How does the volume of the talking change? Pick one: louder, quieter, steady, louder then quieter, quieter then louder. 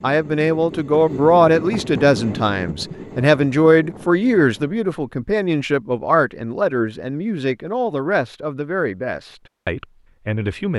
quieter.